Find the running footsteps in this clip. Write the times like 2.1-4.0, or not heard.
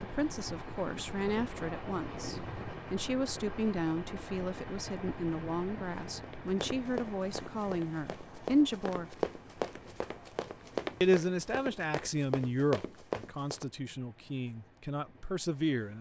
6.2-13.7.